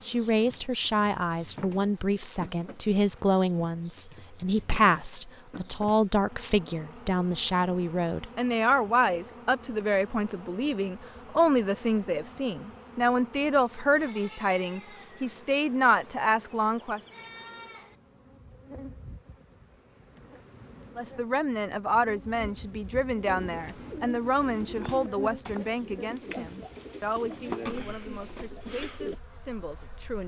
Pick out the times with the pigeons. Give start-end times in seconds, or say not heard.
23.2-29.2.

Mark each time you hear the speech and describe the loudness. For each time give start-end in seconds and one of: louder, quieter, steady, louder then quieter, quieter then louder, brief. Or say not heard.
0.0-17.0 steady
20.9-30.2 quieter.